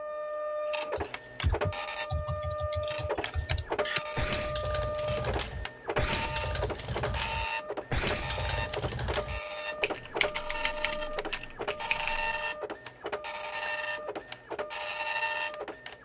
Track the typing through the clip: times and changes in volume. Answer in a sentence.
You can hear the typing from 0.9 to 12.5 s, at a steady volume.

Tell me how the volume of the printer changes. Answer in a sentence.
The volume of the printer stays about the same.